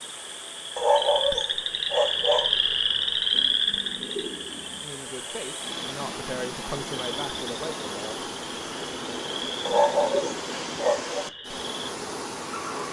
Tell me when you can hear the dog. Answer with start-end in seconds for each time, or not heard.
0.8-2.5, 9.7-11.2.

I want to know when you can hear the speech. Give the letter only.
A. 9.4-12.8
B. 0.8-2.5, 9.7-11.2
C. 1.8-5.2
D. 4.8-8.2
D.